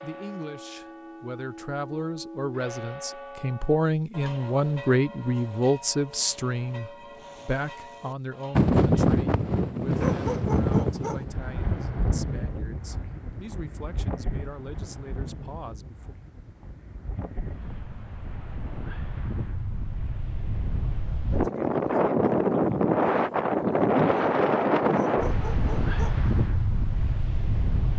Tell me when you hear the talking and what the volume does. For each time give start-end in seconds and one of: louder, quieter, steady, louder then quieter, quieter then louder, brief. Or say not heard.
0.0-16.1 louder then quieter.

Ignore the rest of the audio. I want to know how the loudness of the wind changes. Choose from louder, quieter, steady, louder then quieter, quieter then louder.
quieter then louder.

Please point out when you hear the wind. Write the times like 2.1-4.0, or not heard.
8.5-27.9.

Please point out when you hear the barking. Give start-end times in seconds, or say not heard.
9.9-11.2, 24.9-26.2.